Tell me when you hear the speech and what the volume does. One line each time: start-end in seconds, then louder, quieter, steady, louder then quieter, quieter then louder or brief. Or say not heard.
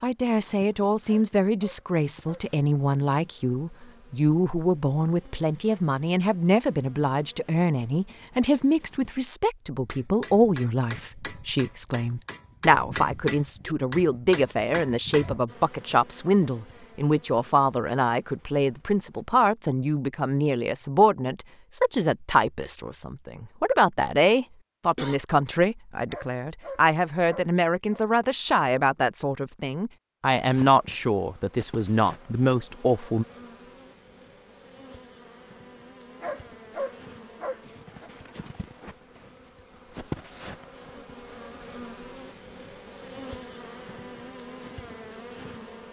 0.0-33.2 steady.